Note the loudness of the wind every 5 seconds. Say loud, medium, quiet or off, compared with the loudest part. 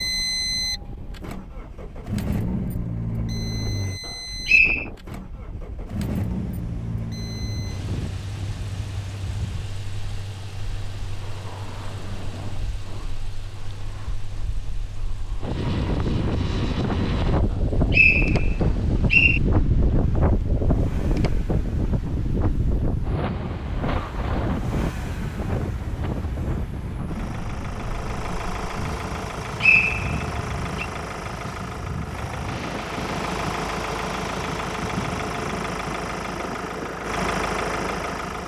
quiet, quiet, quiet, loud, loud, medium, medium, medium.